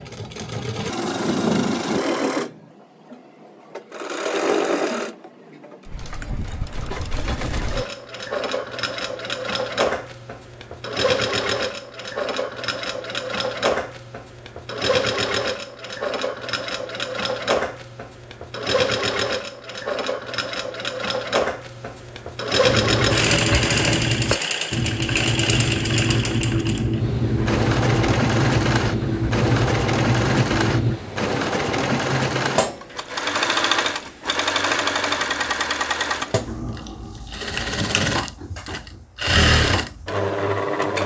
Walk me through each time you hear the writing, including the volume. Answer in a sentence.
You can hear the writing from 22.6 to 31.0 s, at a steady volume.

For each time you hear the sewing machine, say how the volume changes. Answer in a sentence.
The sewing machine can be heard from 0.0 to 41.0 s, at a steady volume.